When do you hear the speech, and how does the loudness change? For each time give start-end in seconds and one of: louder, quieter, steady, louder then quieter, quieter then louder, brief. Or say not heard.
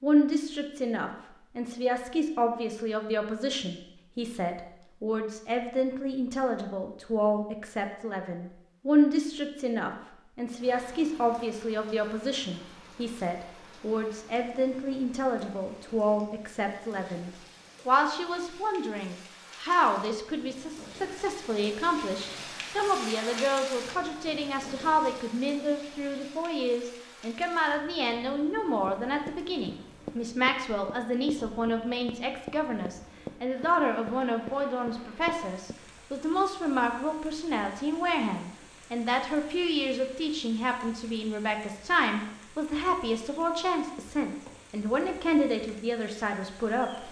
0.0-47.0 steady.